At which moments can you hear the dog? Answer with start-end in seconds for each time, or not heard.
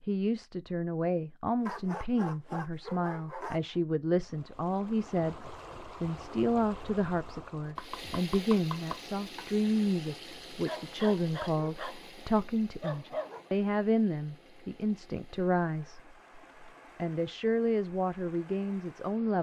1.6-3.8, 10.7-13.5.